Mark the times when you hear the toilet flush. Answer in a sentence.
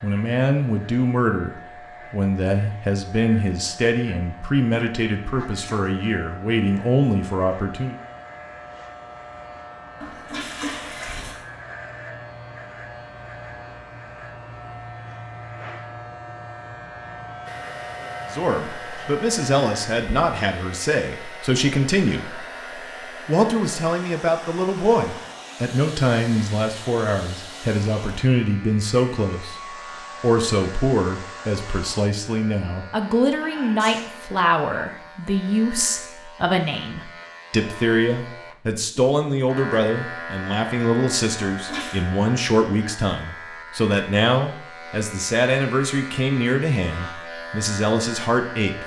You can hear the toilet flush from 10.0 to 11.4 s and from 41.5 to 42.0 s.